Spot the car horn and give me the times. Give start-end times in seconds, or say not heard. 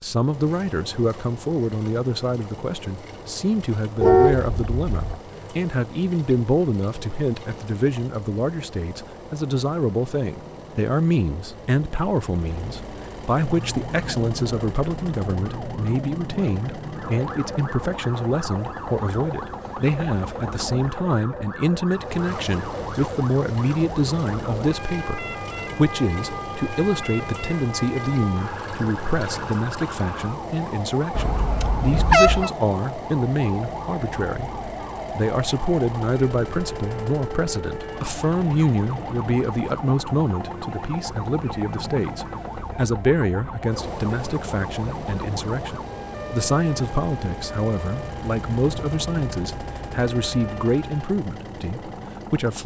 4.0-5.2, 31.1-32.5.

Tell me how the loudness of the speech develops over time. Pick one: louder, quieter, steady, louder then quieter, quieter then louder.
steady.